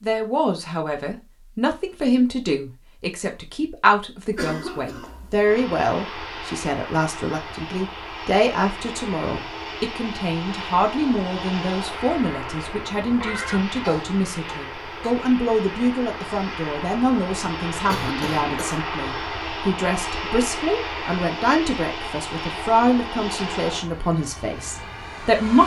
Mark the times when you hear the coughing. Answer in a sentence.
The coughing can be heard from 4.3 to 5.5 s, from 13.2 to 15.2 s and from 17.9 to 18.8 s.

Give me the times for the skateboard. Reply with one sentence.
The skateboard can't be heard in this clip.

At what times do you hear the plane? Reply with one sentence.
The plane can be heard from 5.4 to 25.6 s.